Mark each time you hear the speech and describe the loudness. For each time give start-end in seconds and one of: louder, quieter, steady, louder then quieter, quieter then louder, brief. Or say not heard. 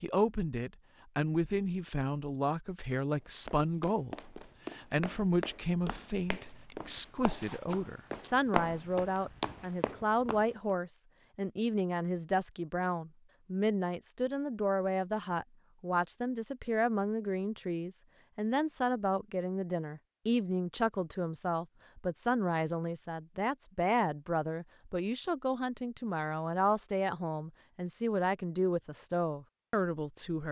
0.0-30.4 steady.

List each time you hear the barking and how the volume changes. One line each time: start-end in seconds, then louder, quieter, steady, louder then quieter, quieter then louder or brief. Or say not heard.
not heard.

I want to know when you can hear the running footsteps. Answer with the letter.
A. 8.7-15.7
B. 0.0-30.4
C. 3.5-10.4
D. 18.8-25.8
C.